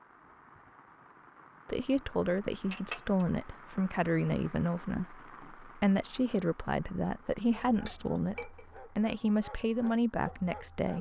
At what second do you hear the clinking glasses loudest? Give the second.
3 s.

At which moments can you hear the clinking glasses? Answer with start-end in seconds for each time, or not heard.
2.7-3.2, 7.8-8.8.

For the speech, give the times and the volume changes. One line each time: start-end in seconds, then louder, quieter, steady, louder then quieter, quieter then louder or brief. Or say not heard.
1.6-10.9 steady.